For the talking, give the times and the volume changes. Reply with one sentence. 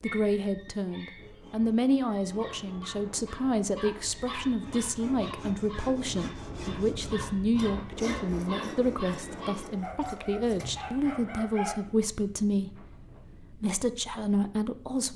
The talking can be heard from 0.0 to 15.1 s, at a steady volume.